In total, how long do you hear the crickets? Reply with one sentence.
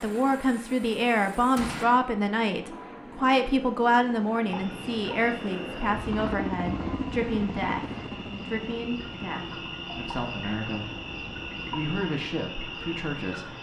The crickets can be heard for 9 seconds in total.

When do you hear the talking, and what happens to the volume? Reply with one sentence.
The talking can be heard from 0.0 to 11.0 s, getting quieter; and briefly from 11.7 to 13.5 s.